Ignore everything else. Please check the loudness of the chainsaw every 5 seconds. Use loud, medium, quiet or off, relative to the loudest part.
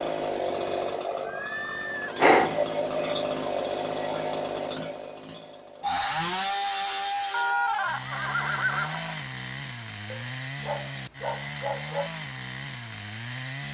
loud, loud, medium.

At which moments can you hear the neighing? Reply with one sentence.
The neighing can be heard from 1.2 to 2.2 s and from 7.3 to 9.2 s.